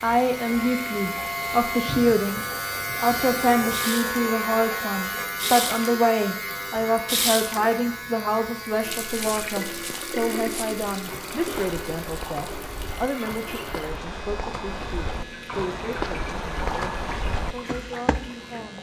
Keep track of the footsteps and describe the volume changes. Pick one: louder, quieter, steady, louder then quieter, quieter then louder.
louder.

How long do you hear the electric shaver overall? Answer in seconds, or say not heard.
19 s.